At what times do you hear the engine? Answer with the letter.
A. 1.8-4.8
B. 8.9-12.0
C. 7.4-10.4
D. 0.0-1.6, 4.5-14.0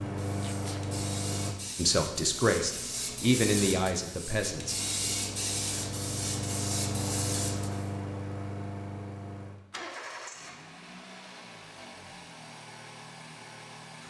D.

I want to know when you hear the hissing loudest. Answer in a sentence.
The volume of the hissing peaks at 5 seconds.